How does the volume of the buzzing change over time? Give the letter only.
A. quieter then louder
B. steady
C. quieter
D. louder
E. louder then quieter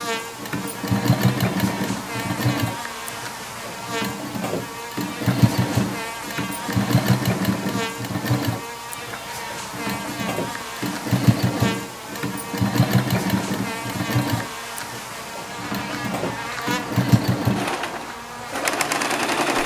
B.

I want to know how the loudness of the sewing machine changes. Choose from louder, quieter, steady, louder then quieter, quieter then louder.
steady.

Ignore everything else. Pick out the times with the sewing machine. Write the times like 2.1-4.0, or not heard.
0.0-19.6.